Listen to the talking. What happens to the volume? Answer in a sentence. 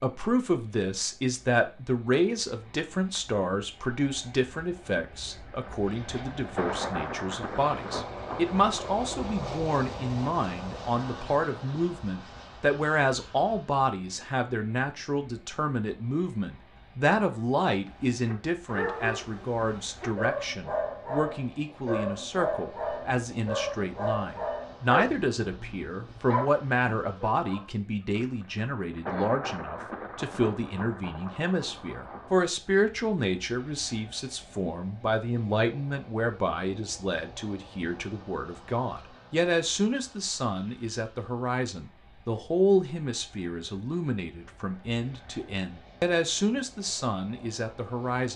The loudness of the talking stays about the same.